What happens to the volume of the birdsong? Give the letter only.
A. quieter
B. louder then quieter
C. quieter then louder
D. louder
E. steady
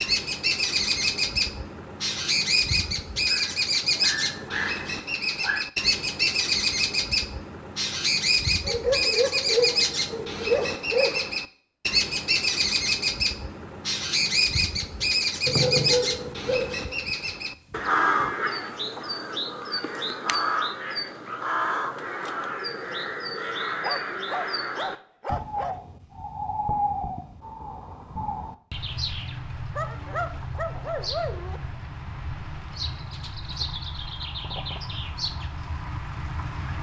A.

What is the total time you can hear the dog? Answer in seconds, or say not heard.
12 s.